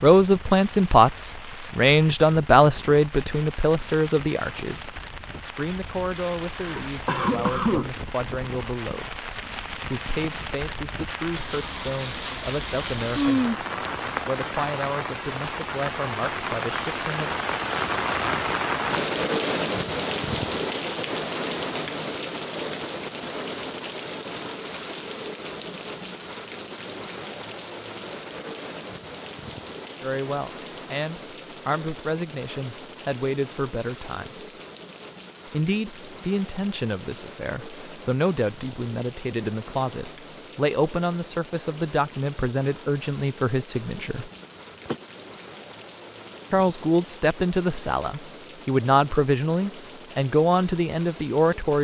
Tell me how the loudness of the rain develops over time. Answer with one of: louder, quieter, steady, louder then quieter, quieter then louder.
louder then quieter.